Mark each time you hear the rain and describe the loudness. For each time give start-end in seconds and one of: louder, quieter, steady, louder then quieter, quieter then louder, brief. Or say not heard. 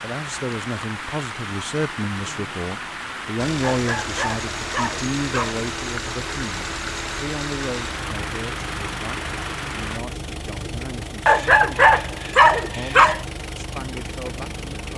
0.0-10.0 steady.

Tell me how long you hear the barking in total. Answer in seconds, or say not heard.
4 s.